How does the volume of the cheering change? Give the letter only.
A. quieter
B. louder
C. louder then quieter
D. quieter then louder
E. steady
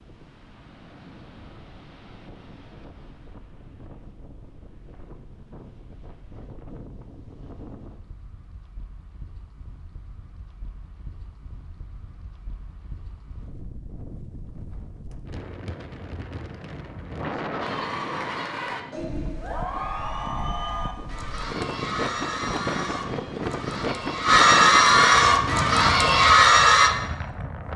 B.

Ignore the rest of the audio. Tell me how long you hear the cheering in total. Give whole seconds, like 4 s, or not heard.
9 s.